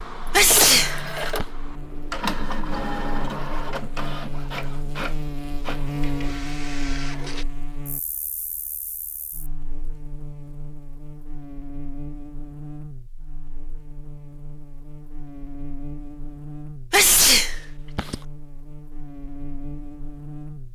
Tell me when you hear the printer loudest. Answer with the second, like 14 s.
1 s.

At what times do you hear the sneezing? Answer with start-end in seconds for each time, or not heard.
0.3-1.4, 16.9-18.1.